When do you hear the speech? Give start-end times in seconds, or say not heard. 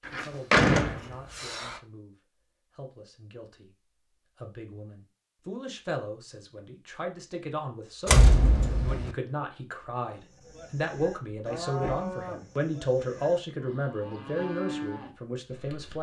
0.0-15.9.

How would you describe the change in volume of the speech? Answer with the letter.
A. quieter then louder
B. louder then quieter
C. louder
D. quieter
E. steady
C.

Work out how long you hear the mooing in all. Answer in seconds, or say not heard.
6 s.